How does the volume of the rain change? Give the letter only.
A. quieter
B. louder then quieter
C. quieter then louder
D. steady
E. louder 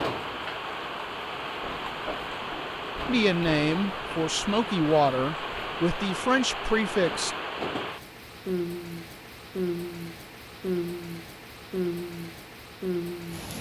D.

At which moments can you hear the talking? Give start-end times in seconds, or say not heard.
3.0-7.3.